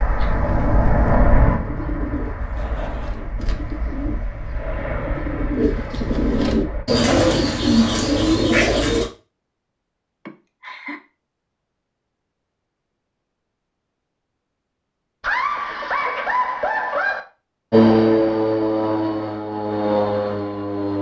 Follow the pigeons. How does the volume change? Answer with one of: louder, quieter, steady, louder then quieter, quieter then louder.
louder.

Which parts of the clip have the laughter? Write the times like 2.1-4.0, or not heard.
2.4-3.3, 10.2-11.0, 15.2-17.2.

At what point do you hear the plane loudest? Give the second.
18 s.